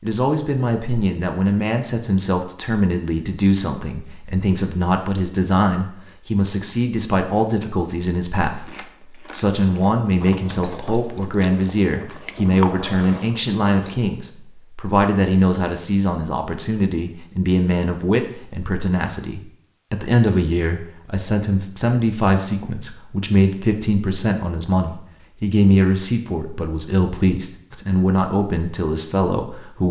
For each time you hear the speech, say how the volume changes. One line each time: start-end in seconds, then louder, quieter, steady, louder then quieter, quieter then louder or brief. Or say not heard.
0.0-29.8 steady.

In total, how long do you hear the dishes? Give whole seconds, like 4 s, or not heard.
not heard.